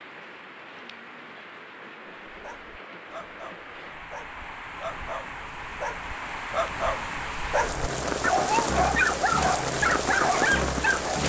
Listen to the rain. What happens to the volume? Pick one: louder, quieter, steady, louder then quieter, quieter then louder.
louder.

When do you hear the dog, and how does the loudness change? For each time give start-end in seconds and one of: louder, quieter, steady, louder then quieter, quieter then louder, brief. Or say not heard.
2.2-11.2 louder.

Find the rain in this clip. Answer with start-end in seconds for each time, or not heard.
0.0-11.2.